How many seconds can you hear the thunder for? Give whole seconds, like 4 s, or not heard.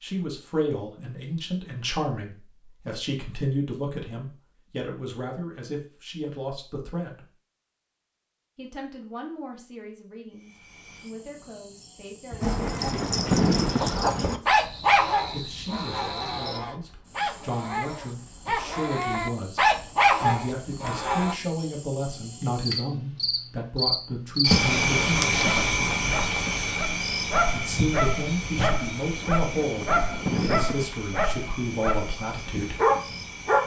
3 s.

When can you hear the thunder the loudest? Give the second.
13 s.